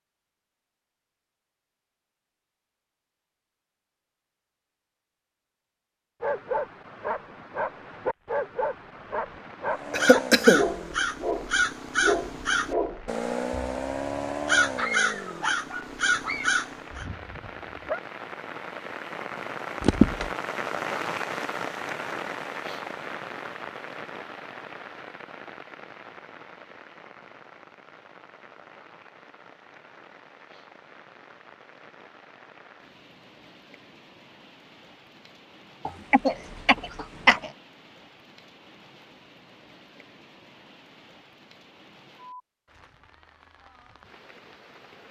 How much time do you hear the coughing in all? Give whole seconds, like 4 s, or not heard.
3 s.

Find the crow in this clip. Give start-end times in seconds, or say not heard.
9.7-17.1.